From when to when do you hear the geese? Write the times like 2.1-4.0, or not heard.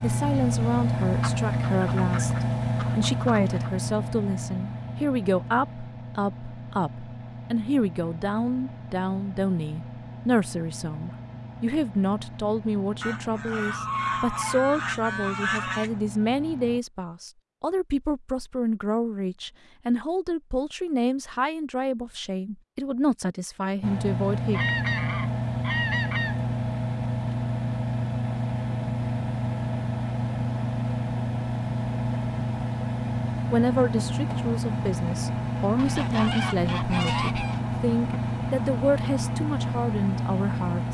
1.0-3.7, 13.0-15.9, 24.5-26.4, 35.8-37.6.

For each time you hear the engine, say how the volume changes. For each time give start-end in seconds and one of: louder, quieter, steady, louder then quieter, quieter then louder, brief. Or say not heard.
0.0-16.8 quieter
23.8-40.9 steady.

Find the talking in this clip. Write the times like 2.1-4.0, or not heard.
0.0-24.6, 33.5-40.9.